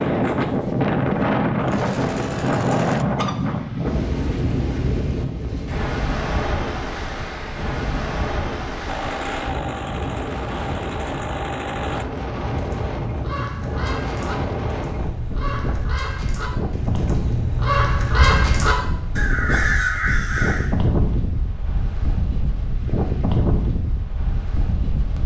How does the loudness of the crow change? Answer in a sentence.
The volume of the crow goes up.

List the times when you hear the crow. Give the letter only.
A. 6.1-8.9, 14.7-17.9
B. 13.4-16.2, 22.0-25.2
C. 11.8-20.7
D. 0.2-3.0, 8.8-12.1
C.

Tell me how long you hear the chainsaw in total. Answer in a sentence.
You can hear the chainsaw for 6 seconds altogether.